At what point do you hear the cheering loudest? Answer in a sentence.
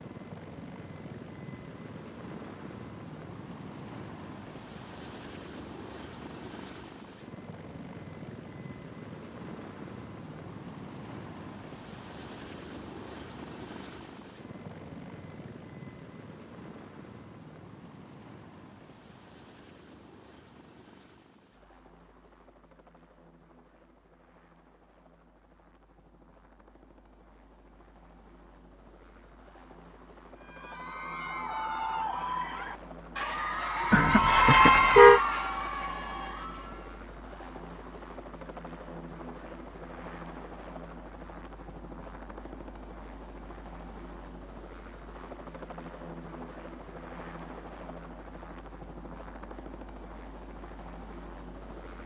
The volume of the cheering peaks at 35 seconds.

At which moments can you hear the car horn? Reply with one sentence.
The car horn can be heard from 33.9 to 35.2 s.